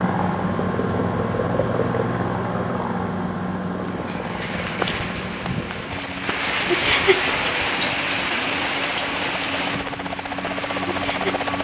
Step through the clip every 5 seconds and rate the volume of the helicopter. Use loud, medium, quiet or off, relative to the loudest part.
loud, medium, loud.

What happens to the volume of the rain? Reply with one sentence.
The loudness of the rain goes up, then down.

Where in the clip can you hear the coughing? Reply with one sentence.
The coughing can't be heard in this clip.